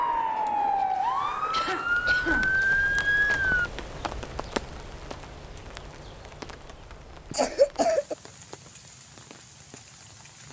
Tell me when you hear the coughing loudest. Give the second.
8 s.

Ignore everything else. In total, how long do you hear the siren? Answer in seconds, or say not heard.
4 s.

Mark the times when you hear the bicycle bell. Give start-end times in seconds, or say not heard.
not heard.